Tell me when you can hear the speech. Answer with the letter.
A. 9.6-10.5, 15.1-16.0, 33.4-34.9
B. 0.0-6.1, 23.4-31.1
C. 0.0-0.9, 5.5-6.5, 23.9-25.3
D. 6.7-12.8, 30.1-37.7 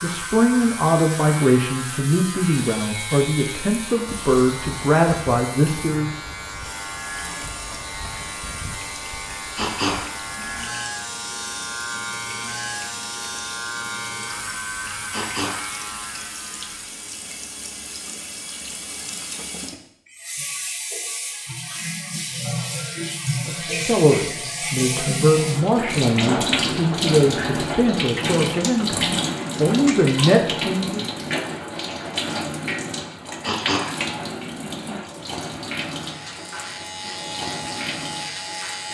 B.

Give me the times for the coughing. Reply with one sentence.
The coughing can be heard from 9.6 to 10.5 s, from 15.1 to 16.0 s and from 33.4 to 34.9 s.